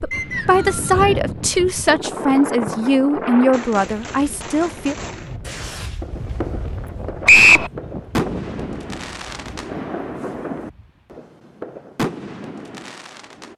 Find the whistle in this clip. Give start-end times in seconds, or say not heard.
0.1-1.1, 7.2-7.7.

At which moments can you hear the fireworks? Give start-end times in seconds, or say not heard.
2.5-13.5.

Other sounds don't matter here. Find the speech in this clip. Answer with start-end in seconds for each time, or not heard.
0.0-5.0.